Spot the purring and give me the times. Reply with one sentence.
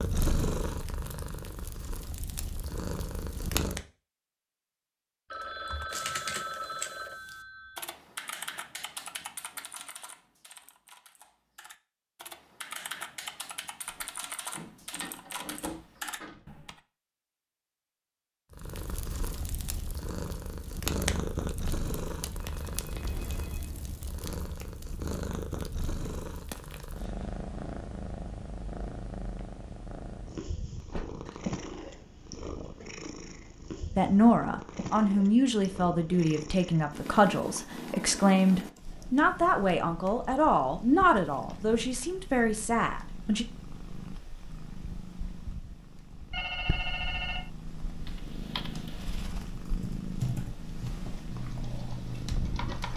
The purring can be heard from 0.0 to 3.9 s and from 18.5 to 52.9 s.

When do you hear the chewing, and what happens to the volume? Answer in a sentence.
The chewing can't be heard in this clip.